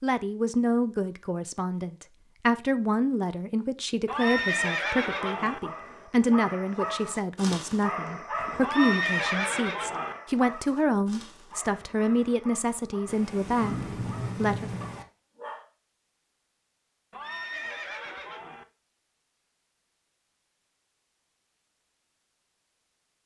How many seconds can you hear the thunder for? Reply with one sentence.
The thunder can be heard for 2 seconds in total.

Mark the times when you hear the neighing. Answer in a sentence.
The neighing can be heard from 4.0 to 5.6 s, from 8.6 to 10.2 s and from 17.1 to 18.6 s.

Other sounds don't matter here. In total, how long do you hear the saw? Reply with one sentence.
The saw can't be heard in this clip.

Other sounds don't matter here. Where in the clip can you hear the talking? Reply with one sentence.
You can hear the talking from 0.0 to 14.7 s.